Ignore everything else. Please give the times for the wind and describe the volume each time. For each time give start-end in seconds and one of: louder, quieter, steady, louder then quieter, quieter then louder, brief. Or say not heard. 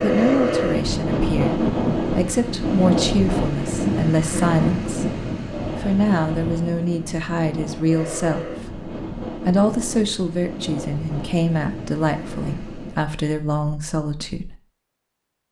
0.0-13.2 quieter.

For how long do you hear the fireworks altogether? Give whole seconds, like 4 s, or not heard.
not heard.